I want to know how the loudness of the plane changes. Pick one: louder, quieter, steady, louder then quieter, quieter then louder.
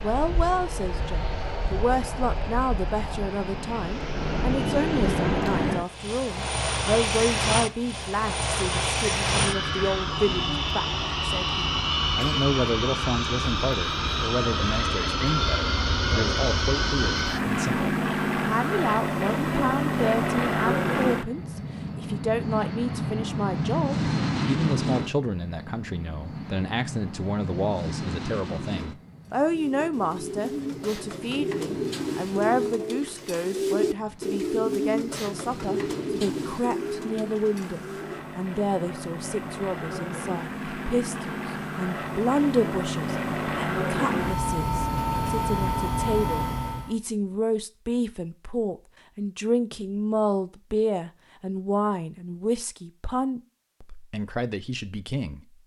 quieter then louder.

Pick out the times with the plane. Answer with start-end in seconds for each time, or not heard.
0.0-47.0.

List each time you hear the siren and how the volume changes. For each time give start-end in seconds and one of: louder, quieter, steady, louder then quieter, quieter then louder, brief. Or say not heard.
not heard.